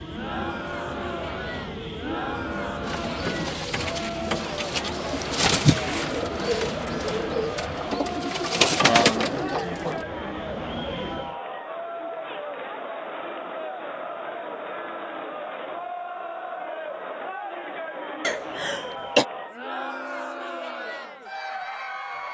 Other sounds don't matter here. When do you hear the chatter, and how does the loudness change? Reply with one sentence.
You can hear the chatter from 0.0 to 22.2 s, at a steady volume.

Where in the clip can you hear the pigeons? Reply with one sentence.
You can hear the pigeons from 2.9 to 10.1 s.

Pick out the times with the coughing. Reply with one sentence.
The coughing can be heard from 18.2 to 19.2 s.